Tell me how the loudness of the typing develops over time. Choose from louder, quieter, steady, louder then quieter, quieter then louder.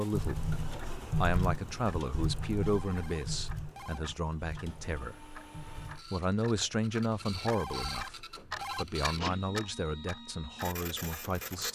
quieter.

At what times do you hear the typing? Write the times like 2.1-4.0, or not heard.
0.1-6.0.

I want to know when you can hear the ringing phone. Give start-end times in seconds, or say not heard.
2.5-4.0, 7.3-8.8.